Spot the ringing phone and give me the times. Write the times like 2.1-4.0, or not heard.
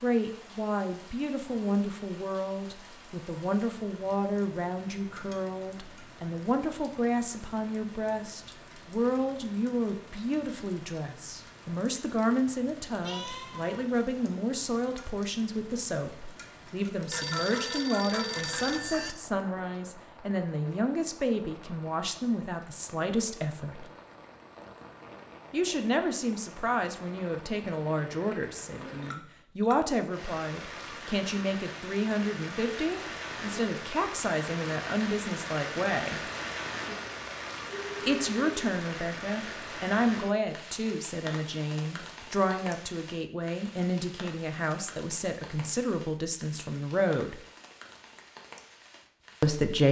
17.1-19.1, 37.6-38.6.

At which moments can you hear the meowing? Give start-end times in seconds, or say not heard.
13.0-14.0.